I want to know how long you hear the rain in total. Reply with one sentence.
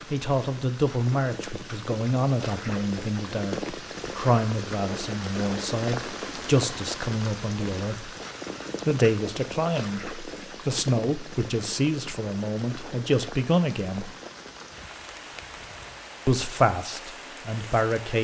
The rain can be heard for 18 seconds in total.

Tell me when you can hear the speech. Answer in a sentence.
You can hear the speech from 0.1 to 8.1 s, from 8.8 to 14.1 s and from 16.2 to 18.2 s.